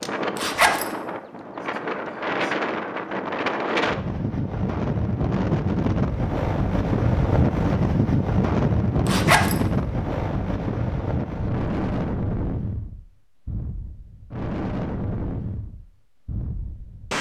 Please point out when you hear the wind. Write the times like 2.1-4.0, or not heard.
0.0-17.1.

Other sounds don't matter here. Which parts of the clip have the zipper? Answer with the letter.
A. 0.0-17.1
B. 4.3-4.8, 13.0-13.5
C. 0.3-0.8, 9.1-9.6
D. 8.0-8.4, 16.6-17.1
C.